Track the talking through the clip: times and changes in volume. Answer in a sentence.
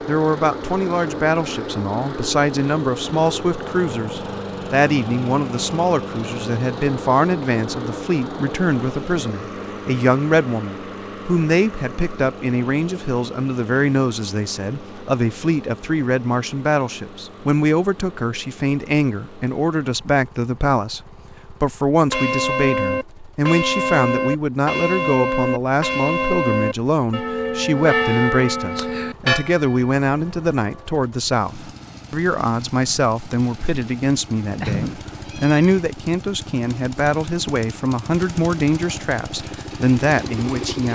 You can hear the talking from 0.1 to 40.8 s, at a steady volume.